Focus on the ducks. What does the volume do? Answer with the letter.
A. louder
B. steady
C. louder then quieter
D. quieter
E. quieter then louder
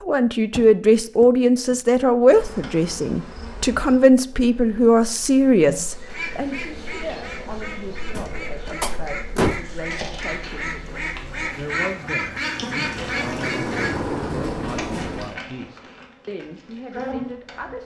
A.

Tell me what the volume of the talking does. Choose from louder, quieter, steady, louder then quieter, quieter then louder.
quieter.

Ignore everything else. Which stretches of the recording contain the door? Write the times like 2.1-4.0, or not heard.
0.5-1.8, 8.2-9.7, 12.9-15.3.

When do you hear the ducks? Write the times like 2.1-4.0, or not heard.
5.9-14.2.